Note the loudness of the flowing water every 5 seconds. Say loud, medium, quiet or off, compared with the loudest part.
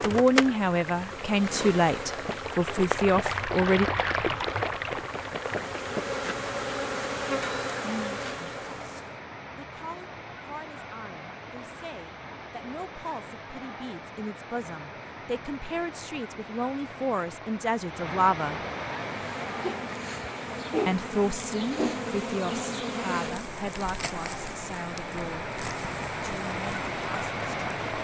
loud, medium, medium, medium, medium, loud.